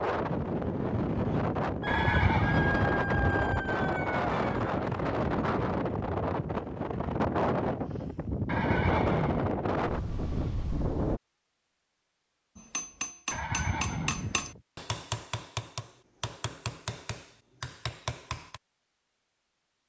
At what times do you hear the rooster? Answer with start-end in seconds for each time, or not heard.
1.8-4.8.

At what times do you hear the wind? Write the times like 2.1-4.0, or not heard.
0.0-11.2.